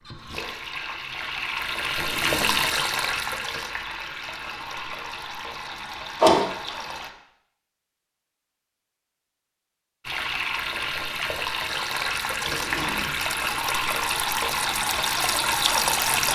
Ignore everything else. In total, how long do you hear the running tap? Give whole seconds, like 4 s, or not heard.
13 s.